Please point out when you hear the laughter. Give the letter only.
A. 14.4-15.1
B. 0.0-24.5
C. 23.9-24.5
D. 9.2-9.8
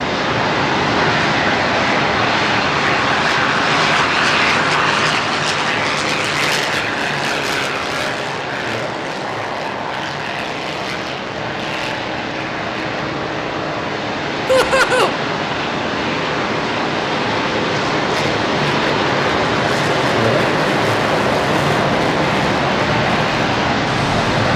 A.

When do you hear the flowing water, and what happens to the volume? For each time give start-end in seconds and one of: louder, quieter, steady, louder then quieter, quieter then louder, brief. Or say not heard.
0.0-24.5 quieter then louder.